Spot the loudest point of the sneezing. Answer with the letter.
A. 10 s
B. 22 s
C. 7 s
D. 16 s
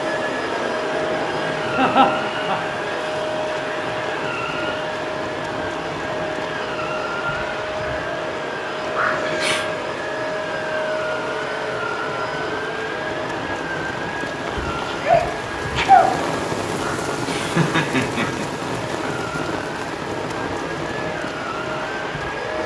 D.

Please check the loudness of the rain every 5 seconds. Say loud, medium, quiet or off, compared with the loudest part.
medium, medium, medium, loud, loud.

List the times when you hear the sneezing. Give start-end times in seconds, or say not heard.
14.4-16.1.